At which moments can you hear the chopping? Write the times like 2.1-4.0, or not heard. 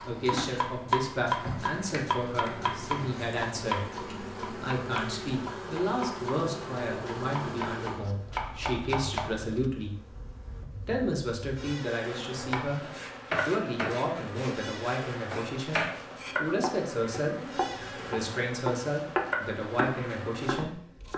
0.0-9.7, 12.3-21.1.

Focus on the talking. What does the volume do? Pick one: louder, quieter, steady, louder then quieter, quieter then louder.
steady.